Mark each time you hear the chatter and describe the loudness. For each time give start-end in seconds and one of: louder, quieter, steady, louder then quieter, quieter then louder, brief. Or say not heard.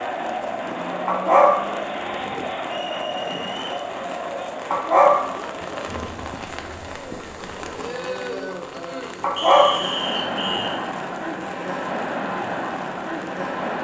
0.0-13.7 quieter then louder.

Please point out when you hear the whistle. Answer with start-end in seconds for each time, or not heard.
2.6-3.9, 9.3-10.8.